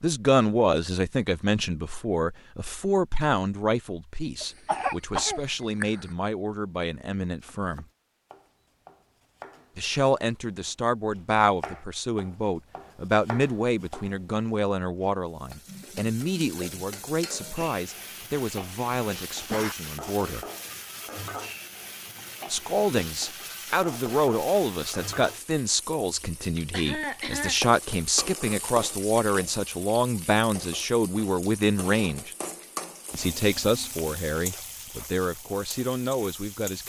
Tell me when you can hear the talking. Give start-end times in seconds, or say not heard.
0.0-7.8, 9.8-20.4, 22.5-32.3, 33.1-36.8.